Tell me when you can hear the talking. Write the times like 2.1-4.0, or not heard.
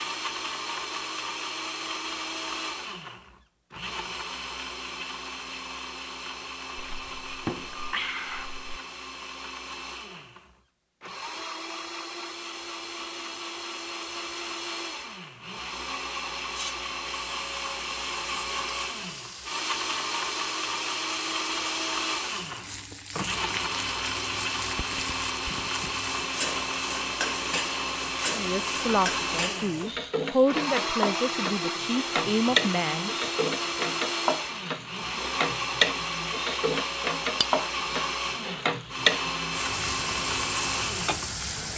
28.3-33.1.